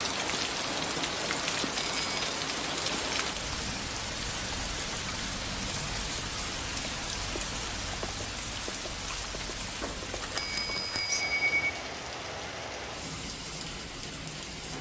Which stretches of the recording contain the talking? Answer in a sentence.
You can't hear the talking here.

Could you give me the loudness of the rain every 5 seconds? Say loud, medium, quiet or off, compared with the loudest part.
loud, loud, medium.